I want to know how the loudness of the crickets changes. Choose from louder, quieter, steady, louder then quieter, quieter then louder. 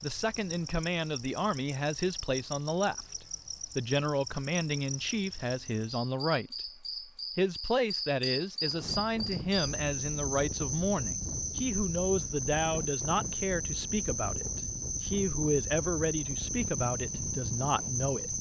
louder.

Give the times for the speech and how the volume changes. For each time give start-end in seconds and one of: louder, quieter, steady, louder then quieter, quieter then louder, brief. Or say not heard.
0.0-18.3 steady.